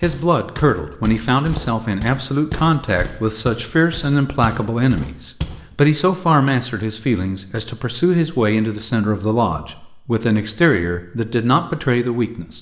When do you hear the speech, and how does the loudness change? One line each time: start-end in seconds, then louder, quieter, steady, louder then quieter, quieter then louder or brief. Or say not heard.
0.0-12.5 steady.